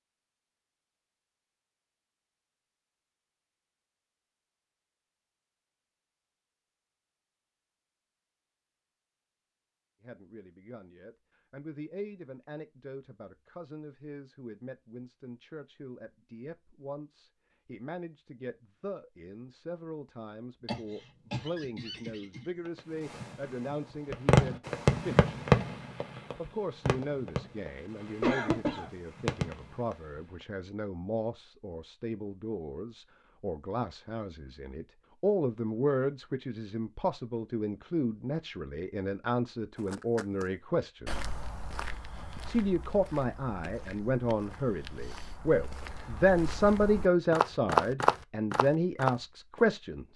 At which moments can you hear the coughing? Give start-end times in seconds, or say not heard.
20.6-22.7, 28.2-28.9.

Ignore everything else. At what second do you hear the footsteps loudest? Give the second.
48 s.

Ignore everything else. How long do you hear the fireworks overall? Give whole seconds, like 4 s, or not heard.
8 s.